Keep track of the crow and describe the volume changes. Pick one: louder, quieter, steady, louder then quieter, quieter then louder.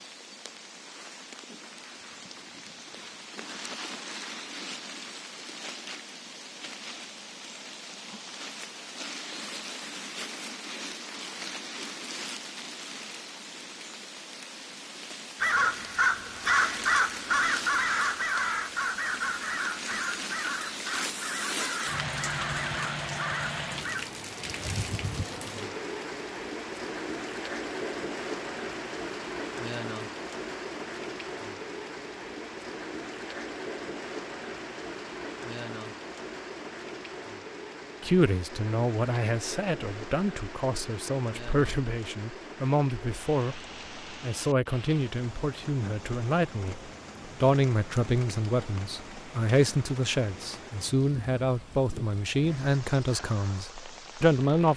quieter.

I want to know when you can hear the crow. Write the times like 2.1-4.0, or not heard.
15.3-24.1.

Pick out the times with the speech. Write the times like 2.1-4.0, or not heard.
38.0-54.7.